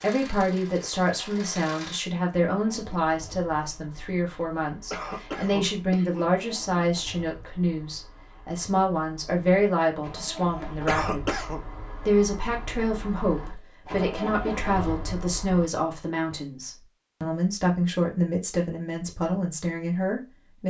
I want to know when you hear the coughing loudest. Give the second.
11 s.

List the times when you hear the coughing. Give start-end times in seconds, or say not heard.
4.9-6.2, 10.8-11.6.